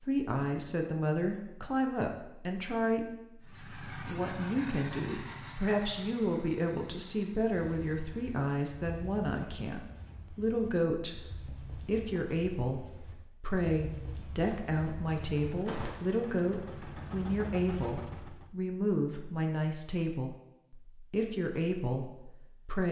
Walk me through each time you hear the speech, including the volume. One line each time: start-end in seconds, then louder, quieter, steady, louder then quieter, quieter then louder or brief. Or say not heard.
0.0-22.8 steady.